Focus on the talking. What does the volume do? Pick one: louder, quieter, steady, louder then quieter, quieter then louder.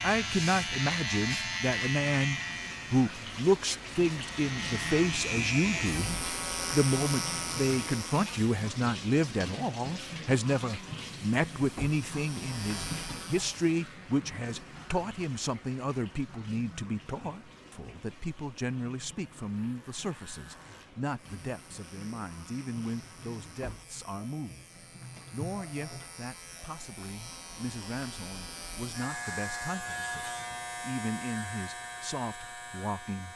quieter.